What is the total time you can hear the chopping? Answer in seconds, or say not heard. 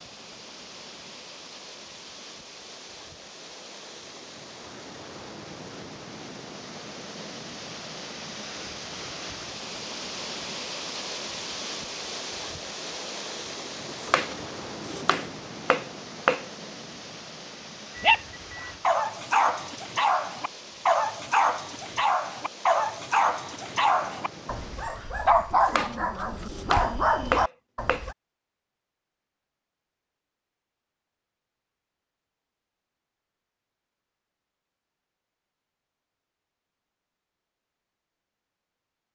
5 s.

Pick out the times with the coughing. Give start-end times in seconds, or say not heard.
not heard.